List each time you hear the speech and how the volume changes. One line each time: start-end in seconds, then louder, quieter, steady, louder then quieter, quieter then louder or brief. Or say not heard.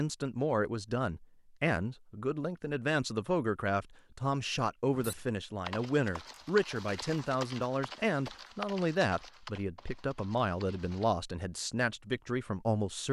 0.0-13.0 steady.